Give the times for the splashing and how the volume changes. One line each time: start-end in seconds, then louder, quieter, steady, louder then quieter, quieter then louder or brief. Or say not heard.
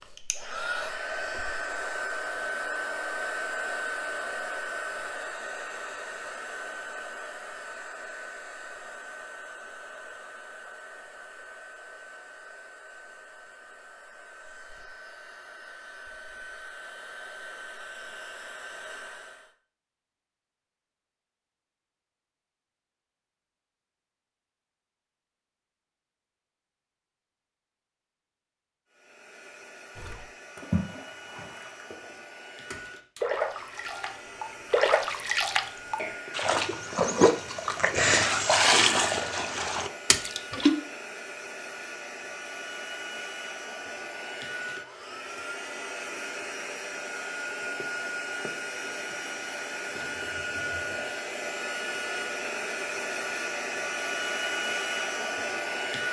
29.9-40.7 louder.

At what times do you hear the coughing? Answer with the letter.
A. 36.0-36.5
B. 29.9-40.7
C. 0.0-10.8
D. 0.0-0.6
A.